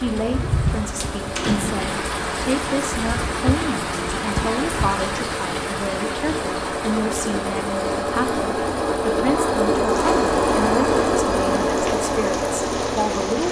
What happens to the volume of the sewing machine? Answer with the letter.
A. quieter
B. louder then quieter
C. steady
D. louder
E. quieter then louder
D.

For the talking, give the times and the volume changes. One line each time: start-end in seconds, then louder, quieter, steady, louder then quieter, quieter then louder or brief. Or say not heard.
0.0-13.4 steady.